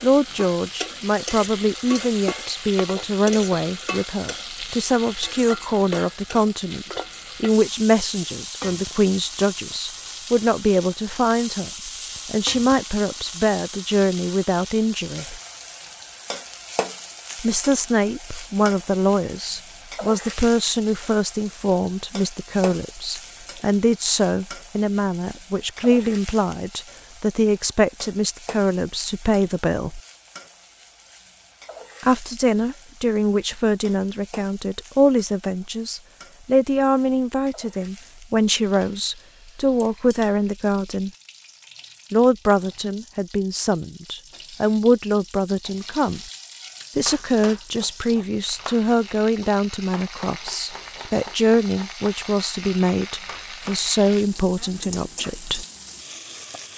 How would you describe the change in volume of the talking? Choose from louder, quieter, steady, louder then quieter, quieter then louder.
steady.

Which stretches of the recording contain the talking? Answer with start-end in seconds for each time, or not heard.
0.0-15.4, 17.4-30.0, 32.0-41.1, 42.1-46.2, 47.0-55.6.